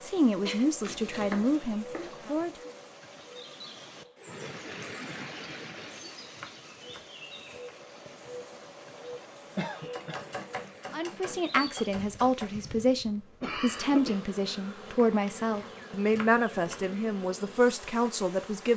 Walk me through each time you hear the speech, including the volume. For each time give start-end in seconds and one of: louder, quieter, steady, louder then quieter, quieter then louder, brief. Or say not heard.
0.0-2.5 brief
10.9-18.7 steady.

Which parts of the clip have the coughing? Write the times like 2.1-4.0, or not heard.
0.5-0.9, 9.6-10.2, 13.4-14.2.